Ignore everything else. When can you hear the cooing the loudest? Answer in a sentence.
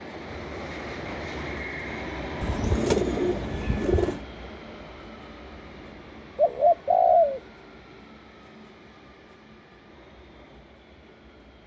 The loudest moment of the cooing is at 7 seconds.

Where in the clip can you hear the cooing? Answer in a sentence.
The cooing can be heard from 2.4 to 4.2 s and from 6.3 to 7.4 s.